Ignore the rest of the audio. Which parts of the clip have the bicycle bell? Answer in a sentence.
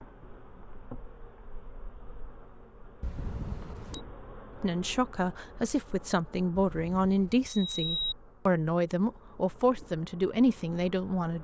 You can hear the bicycle bell from 3.0 to 4.0 s and from 6.5 to 8.2 s.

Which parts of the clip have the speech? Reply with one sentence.
You can hear the speech from 4.6 to 11.4 s.